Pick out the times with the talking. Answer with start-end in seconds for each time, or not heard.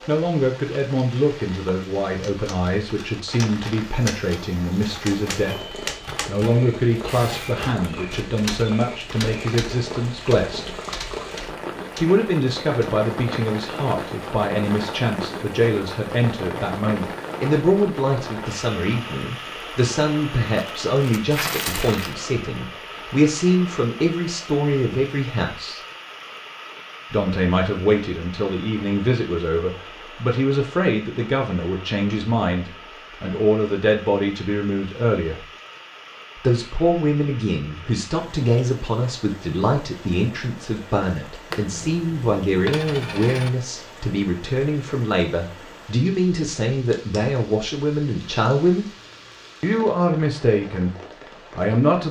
0.1-10.8, 12.0-25.8, 27.1-35.5, 36.4-48.9, 49.6-51.0, 51.5-52.0.